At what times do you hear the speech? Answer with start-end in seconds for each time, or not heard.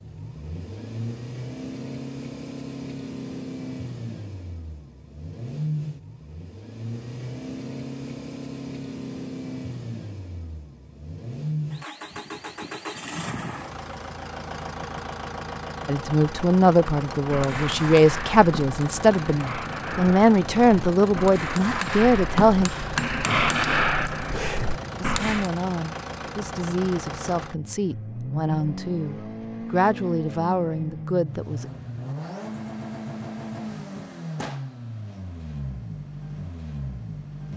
15.8-22.7, 25.0-31.6.